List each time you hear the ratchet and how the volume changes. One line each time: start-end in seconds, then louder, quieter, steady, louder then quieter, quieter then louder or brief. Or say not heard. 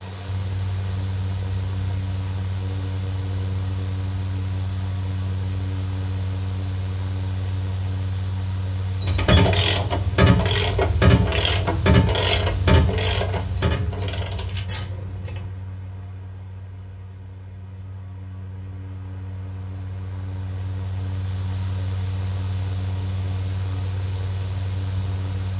9.0-15.5 quieter.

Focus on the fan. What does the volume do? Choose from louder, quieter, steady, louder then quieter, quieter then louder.
quieter then louder.